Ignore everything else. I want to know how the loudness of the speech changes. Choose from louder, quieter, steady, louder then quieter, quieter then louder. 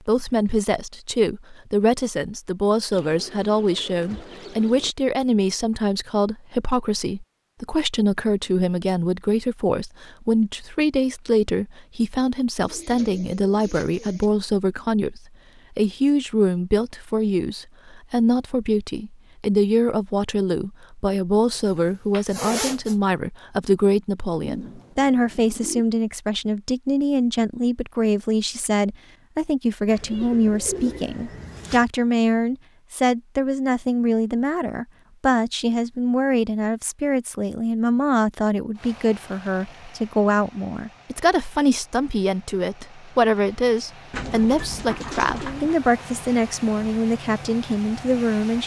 steady.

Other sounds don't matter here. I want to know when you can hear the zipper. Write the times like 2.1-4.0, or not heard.
21.6-22.9.